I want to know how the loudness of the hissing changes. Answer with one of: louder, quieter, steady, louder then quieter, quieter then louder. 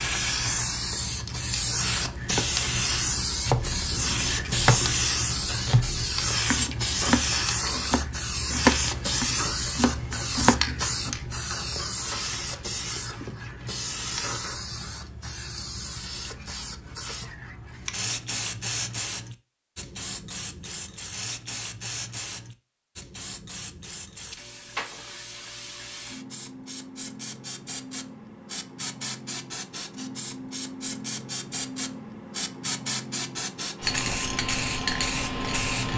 quieter then louder.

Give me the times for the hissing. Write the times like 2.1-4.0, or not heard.
0.0-35.9.